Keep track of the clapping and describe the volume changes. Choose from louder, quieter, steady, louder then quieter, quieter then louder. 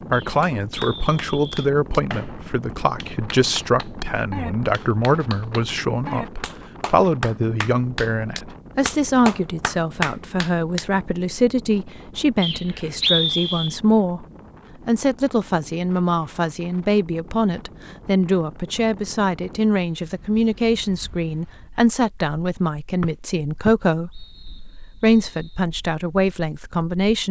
louder.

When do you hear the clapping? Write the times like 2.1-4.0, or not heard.
0.4-10.8.